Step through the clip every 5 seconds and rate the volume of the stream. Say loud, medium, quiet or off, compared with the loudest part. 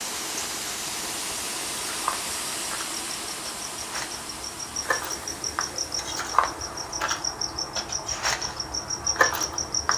loud, medium.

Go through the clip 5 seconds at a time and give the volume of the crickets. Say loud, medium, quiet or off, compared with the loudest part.
medium, loud.